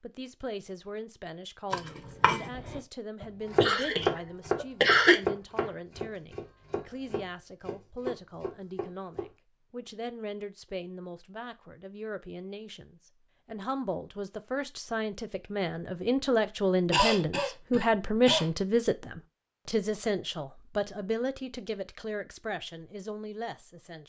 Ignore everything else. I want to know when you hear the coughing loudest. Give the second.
5 s.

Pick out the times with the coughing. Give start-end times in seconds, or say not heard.
3.2-5.2, 16.9-18.4.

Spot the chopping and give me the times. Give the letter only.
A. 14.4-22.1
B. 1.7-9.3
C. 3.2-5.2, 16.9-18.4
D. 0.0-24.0
B.